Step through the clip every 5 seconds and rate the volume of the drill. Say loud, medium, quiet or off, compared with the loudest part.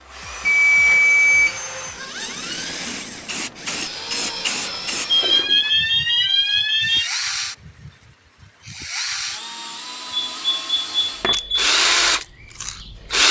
medium, medium, loud.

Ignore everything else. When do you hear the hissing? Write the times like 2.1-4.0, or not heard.
2.8-5.9.